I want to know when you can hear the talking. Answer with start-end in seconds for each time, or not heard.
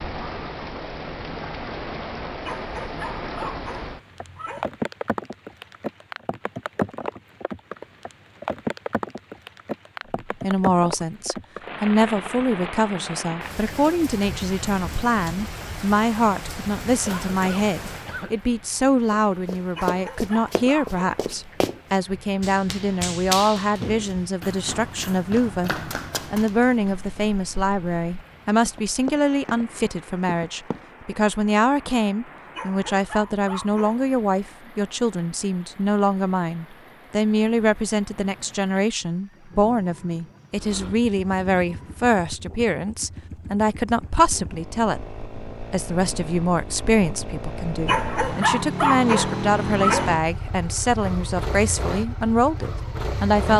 10.4-25.7, 26.3-53.5.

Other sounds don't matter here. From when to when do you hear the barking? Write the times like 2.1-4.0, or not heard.
2.5-4.7, 19.8-21.1, 32.5-34.1, 47.9-50.2.